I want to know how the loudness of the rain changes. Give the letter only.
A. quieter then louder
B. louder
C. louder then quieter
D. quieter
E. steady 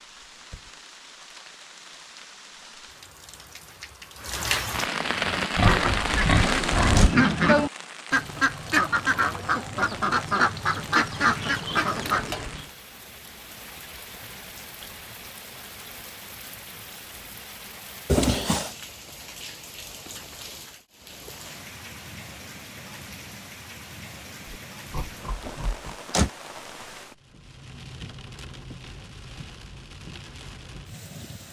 D.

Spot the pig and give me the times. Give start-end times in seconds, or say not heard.
5.5-7.1, 24.4-25.9.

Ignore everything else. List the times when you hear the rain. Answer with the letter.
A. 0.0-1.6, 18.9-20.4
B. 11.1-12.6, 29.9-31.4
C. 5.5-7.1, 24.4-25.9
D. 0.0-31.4
D.